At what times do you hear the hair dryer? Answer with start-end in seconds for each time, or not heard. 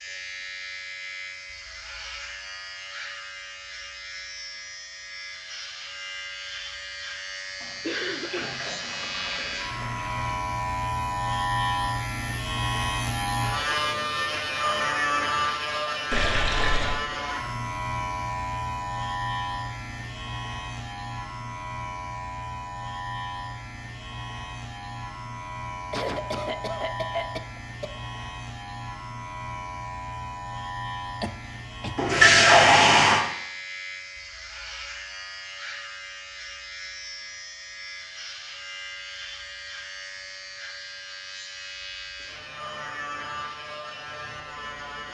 not heard.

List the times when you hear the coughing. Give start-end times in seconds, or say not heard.
7.8-8.6, 25.9-27.9, 31.2-31.9.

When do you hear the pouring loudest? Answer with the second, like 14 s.
32 s.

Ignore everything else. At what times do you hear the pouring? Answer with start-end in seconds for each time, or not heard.
7.6-10.3, 16.1-17.0, 31.9-33.2.